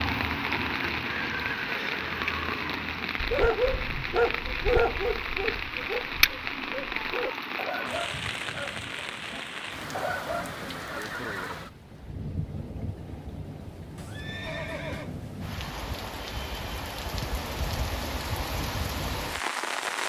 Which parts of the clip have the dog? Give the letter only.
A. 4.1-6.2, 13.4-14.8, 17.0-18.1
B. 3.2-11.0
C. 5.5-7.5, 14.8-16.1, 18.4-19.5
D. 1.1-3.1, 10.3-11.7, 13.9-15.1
B.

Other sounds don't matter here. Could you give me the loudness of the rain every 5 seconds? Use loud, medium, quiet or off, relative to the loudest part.
loud, loud, medium, loud.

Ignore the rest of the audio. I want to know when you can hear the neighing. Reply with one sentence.
You can hear the neighing from 1.1 to 3.1 s, from 10.3 to 11.7 s and from 13.9 to 15.1 s.